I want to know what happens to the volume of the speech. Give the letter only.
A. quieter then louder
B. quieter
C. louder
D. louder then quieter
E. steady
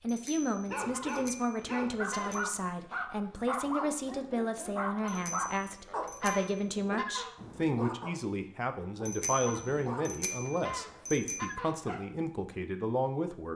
E.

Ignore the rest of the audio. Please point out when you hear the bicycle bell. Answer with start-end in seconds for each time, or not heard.
0.1-2.5, 5.0-6.7, 9.1-11.5.